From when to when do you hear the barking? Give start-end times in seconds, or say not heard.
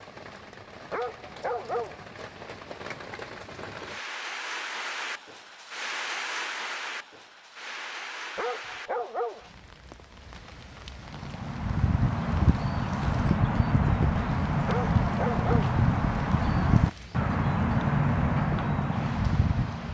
0.9-2.0, 8.3-9.5, 14.7-15.7.